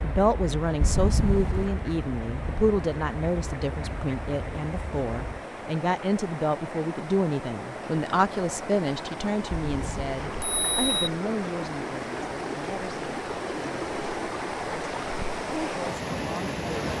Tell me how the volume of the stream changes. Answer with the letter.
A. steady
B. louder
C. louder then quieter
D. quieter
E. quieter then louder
B.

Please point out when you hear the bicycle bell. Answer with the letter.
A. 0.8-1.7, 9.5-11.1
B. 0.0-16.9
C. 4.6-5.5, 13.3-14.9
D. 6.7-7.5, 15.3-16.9
A.